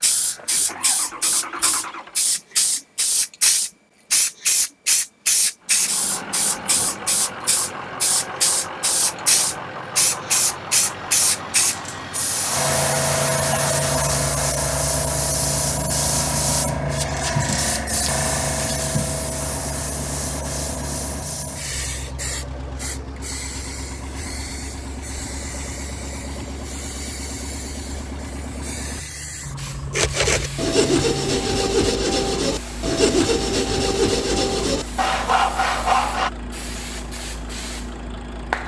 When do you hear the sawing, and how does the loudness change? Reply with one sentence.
The sawing can be heard from 29.8 to 36.3 s, at a steady volume.